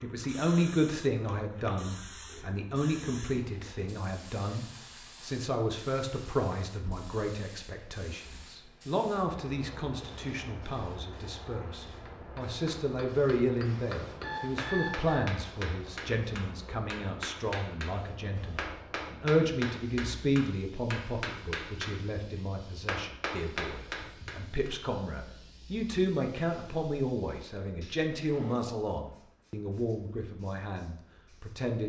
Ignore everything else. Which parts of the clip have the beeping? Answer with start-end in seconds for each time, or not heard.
14.2-15.3.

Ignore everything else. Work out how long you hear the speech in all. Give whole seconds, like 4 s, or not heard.
32 s.